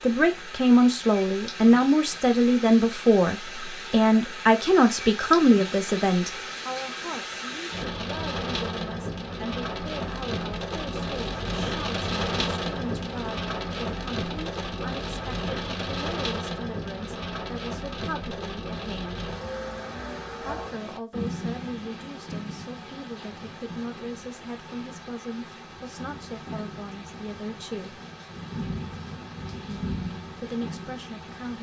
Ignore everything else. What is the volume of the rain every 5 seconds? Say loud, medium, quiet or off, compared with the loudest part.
medium, loud, loud, loud, medium, medium, medium.